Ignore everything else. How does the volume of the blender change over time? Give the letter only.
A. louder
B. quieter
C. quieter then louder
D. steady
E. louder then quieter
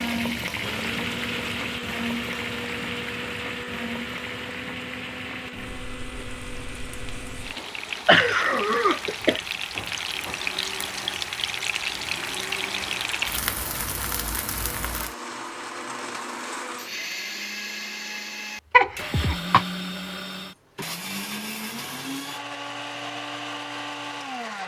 C.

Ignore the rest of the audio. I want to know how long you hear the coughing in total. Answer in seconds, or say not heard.
3 s.